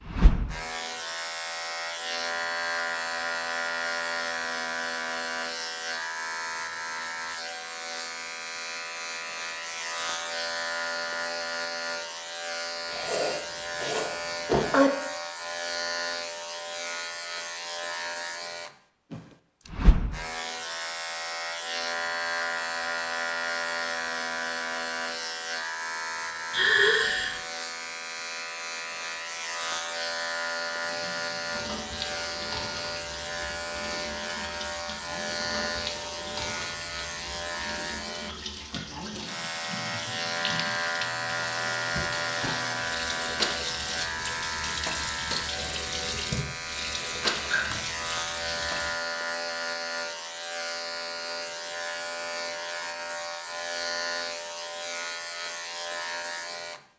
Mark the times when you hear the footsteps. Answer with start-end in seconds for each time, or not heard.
not heard.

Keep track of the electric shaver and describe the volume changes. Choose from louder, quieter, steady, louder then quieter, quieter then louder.
steady.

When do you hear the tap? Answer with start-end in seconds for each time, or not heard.
30.8-49.0.